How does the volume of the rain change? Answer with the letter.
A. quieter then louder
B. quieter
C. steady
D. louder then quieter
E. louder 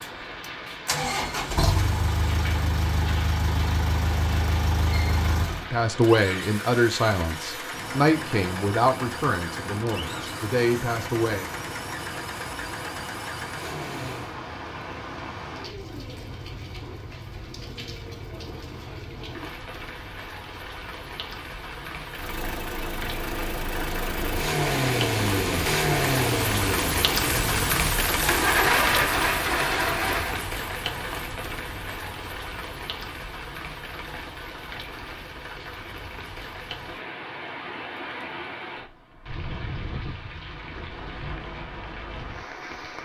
D.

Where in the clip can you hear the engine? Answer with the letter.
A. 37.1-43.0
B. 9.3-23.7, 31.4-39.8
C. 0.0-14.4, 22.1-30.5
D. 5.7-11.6
C.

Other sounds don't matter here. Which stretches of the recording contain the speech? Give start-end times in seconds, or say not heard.
5.7-11.6.